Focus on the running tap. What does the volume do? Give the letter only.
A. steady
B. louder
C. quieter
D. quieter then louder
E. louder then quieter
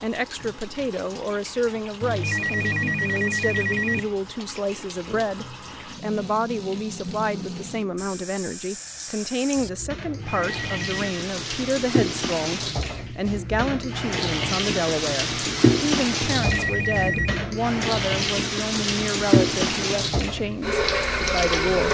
B.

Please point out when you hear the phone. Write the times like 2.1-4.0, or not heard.
2.0-4.0, 10.1-11.2, 16.2-17.4.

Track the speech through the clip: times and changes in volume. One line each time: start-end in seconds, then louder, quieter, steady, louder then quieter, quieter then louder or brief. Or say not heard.
0.0-21.8 steady.